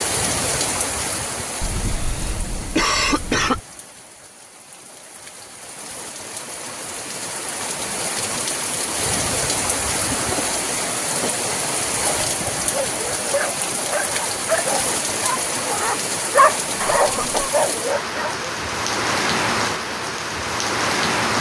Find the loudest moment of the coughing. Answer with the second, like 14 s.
3 s.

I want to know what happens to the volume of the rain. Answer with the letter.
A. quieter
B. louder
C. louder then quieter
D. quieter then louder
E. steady
B.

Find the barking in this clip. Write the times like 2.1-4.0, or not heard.
12.0-18.4.